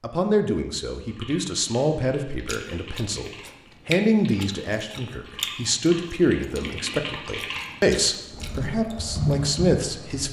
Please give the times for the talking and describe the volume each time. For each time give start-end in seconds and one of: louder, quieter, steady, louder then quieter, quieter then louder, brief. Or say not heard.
0.0-10.2 steady.